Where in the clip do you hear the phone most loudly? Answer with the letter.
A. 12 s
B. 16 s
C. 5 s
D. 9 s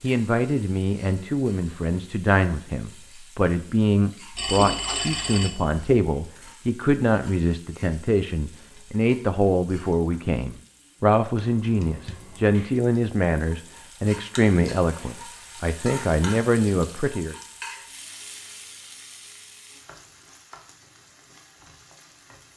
C.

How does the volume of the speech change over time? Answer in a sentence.
The volume of the speech stays about the same.